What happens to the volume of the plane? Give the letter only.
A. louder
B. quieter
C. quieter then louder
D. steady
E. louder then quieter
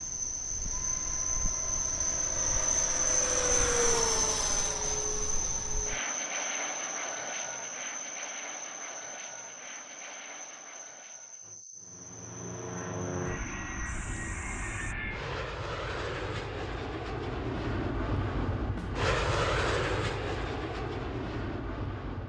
C.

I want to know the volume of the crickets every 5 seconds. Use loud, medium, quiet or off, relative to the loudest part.
loud, medium, quiet, off, off.